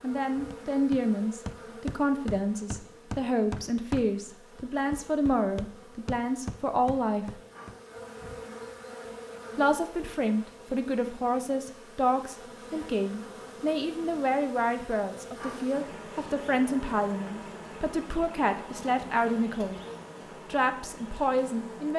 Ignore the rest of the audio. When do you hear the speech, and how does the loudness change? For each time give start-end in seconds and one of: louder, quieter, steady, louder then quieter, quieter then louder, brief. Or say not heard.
0.0-7.3 steady
9.6-19.8 steady
20.4-21.9 brief.